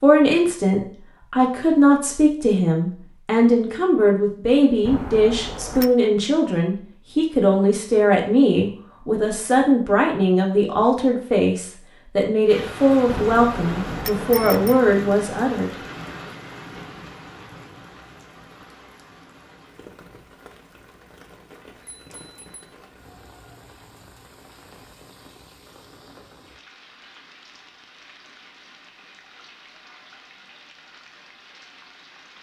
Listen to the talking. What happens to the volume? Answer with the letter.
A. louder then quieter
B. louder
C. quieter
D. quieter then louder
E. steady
E.